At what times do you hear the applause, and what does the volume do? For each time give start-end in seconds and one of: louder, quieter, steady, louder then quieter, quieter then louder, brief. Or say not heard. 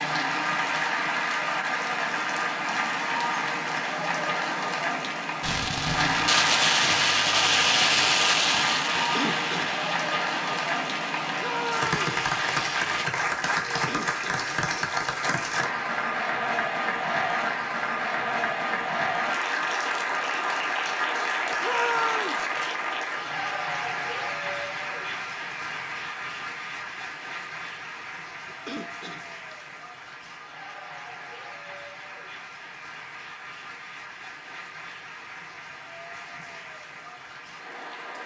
0.0-38.2 quieter.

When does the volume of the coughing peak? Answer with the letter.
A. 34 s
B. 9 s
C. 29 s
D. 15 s
B.